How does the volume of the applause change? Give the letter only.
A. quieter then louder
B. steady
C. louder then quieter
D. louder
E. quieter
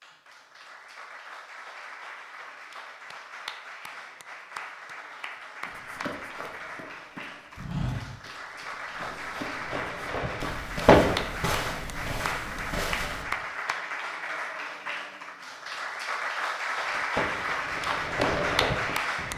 D.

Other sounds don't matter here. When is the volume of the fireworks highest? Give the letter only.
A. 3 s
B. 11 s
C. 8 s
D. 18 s
B.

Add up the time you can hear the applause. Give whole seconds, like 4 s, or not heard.
19 s.